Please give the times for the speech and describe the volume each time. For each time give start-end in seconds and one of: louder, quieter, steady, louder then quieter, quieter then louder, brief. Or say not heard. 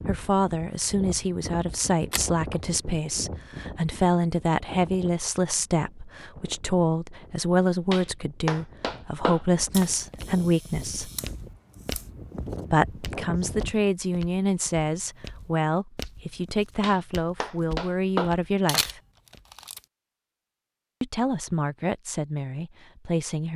0.1-11.1 steady
12.7-19.0 steady
21.0-23.5 brief.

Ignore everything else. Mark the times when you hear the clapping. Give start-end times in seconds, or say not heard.
7.9-9.8, 16.8-18.9.